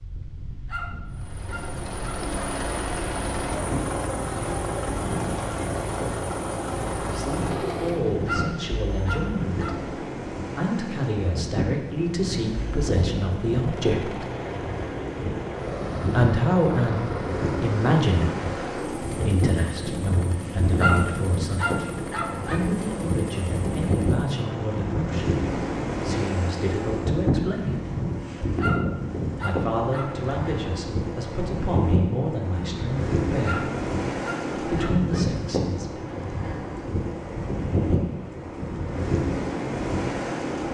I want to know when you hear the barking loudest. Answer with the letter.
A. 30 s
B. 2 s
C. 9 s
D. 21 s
D.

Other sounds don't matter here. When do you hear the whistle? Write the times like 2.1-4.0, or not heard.
not heard.